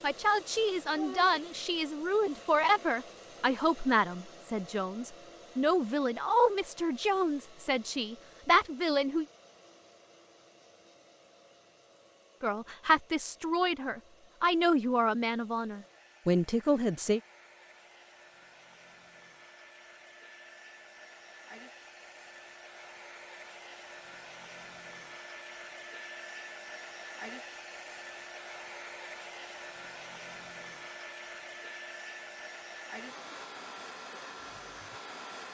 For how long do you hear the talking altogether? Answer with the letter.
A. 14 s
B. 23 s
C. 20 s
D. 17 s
A.